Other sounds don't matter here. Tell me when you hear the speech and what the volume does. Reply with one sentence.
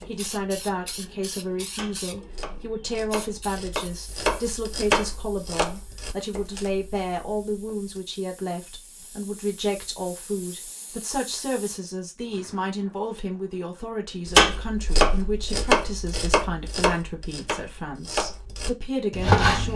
The speech can be heard from 0.0 to 19.7 s, at a steady volume.